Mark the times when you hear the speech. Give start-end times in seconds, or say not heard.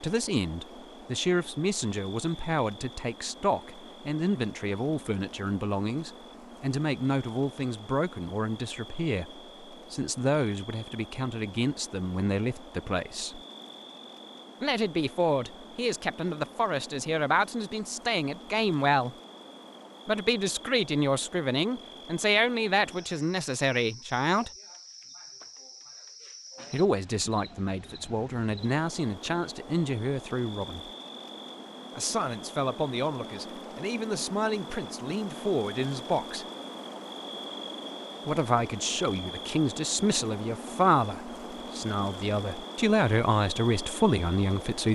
0.0-13.4, 14.6-19.1, 20.1-24.5, 26.7-30.9, 31.9-36.5, 38.2-44.9.